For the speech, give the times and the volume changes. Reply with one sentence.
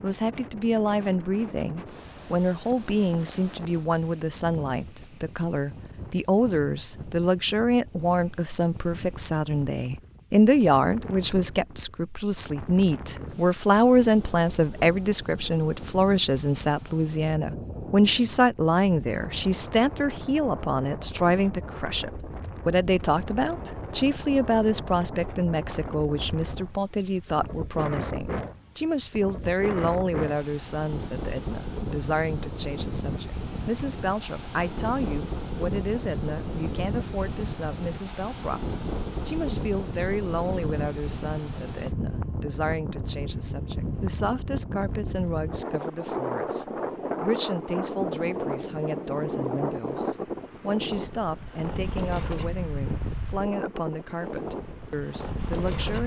You can hear the speech from 0.0 to 56.0 s, getting quieter.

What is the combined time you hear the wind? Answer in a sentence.
You can hear the wind for 56 seconds altogether.